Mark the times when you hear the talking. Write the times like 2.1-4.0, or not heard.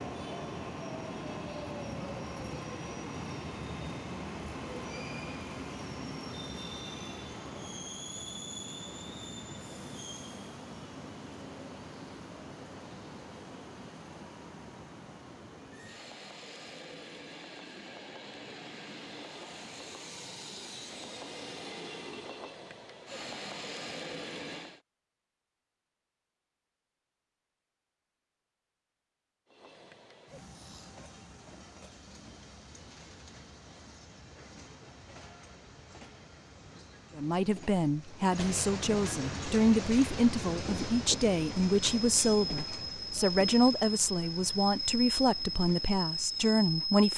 37.1-47.1.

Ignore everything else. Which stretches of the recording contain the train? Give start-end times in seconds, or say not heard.
0.0-24.8, 29.4-47.1.